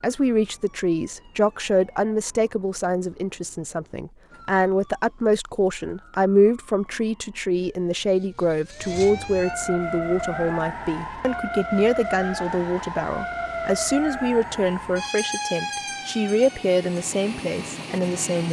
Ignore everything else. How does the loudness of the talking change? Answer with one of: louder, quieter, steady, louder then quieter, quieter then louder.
steady.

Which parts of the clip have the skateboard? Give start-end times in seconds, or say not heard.
not heard.